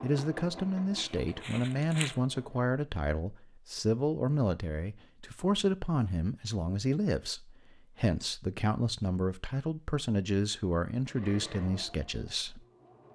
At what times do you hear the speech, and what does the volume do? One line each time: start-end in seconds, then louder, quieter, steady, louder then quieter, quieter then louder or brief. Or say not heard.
0.0-12.6 steady.